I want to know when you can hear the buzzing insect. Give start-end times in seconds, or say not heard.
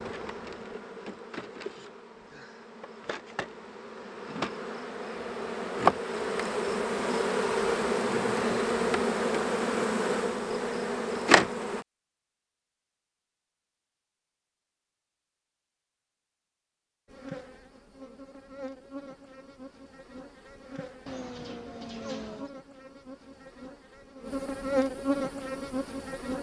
0.0-11.8, 17.1-26.3.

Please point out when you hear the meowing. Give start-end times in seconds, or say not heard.
21.1-22.5.